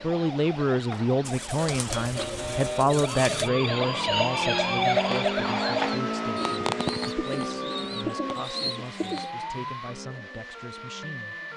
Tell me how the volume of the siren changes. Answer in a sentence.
The volume of the siren goes up, then down.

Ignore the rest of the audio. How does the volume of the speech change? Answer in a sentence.
The loudness of the speech goes down.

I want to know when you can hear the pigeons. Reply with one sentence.
The pigeons can be heard from 1.2 to 3.5 s and from 6.3 to 9.3 s.